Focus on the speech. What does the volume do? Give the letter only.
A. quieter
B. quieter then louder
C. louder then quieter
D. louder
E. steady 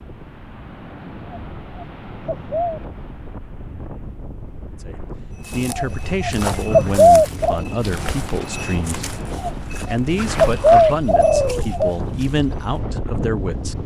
E.